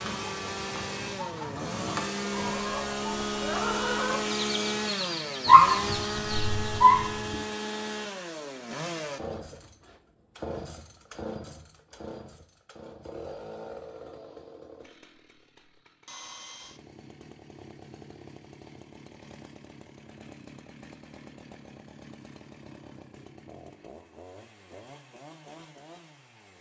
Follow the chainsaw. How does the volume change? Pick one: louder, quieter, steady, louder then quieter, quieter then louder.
quieter.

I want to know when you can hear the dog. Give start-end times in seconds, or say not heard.
5.5-7.3.